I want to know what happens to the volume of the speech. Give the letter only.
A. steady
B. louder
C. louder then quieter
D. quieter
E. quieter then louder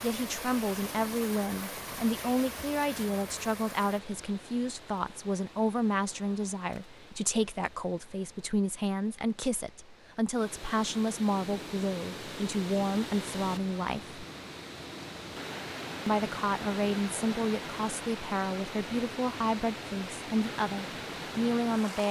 A.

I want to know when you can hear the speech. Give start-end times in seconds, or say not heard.
0.0-14.2, 16.1-22.0.